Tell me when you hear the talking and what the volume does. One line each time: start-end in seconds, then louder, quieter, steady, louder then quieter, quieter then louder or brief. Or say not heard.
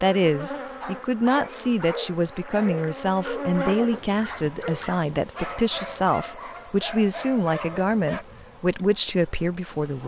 0.0-10.0 steady.